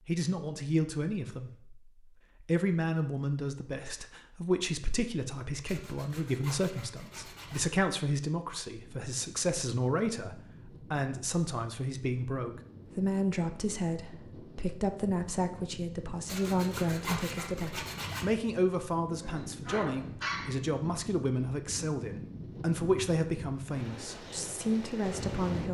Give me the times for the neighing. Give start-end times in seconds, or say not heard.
not heard.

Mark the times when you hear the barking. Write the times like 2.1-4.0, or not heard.
19.2-20.6.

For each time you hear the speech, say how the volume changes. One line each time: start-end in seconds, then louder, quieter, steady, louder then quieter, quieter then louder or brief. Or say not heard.
0.1-1.8 brief
2.4-25.6 steady.